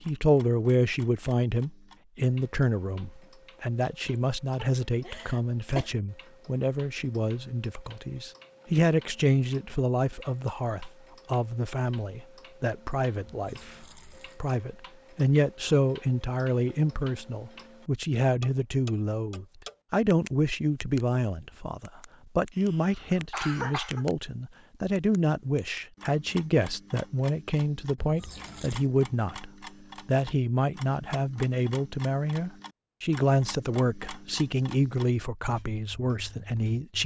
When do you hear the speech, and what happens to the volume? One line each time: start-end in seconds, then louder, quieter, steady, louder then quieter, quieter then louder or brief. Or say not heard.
0.0-37.0 steady.